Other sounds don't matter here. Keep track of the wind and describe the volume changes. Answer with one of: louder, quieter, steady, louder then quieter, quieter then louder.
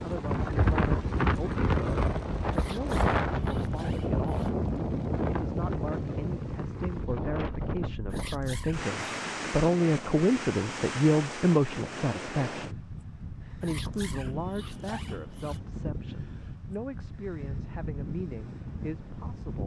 quieter.